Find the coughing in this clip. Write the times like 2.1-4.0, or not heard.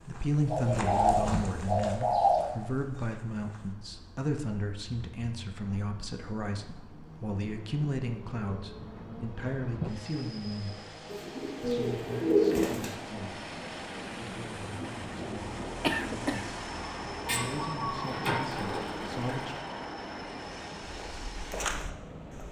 15.8-16.5.